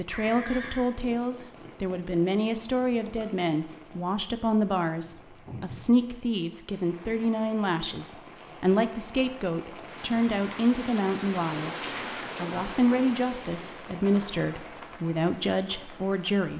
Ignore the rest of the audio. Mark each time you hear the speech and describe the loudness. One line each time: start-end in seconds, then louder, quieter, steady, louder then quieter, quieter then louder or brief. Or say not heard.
0.0-16.5 steady.